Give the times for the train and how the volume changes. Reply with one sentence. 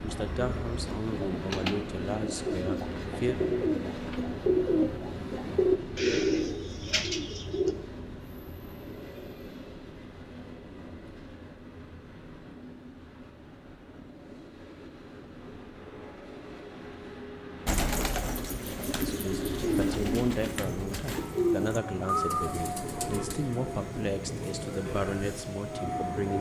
You can hear the train from 0.0 to 26.3 s, getting quieter then louder.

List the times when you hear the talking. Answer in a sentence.
You can hear the talking from 0.0 to 3.4 s and from 18.9 to 26.3 s.